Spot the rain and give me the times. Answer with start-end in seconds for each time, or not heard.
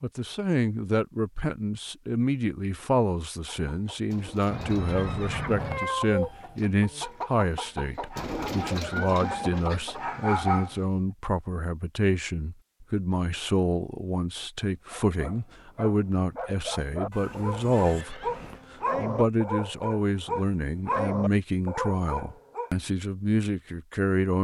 not heard.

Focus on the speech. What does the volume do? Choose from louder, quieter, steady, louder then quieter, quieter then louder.
steady.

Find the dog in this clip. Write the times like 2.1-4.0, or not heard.
8.1-10.8, 14.8-22.7.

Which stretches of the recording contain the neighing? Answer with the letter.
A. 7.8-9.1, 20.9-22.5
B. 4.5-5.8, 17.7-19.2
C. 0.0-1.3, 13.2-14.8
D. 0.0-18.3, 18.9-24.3
B.